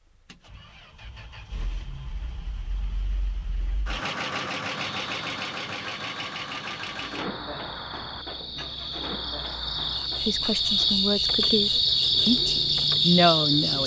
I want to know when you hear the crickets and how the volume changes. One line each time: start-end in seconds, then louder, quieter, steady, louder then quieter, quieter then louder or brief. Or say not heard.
4.7-13.8 louder.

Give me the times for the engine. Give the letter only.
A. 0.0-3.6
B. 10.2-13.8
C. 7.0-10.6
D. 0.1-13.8
D.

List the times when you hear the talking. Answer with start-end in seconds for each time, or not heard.
10.2-13.8.